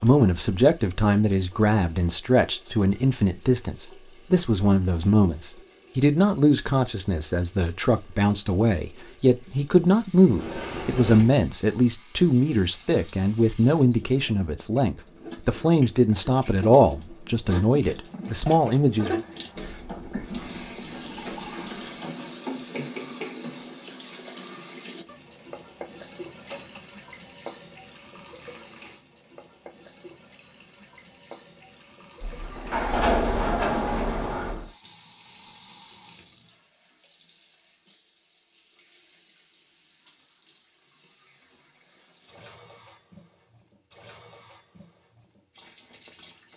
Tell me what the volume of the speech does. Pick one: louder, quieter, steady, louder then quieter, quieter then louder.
steady.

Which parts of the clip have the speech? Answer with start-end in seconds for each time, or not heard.
0.0-19.2.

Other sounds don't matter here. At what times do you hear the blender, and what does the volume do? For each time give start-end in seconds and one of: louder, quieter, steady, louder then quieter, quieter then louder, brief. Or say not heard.
not heard.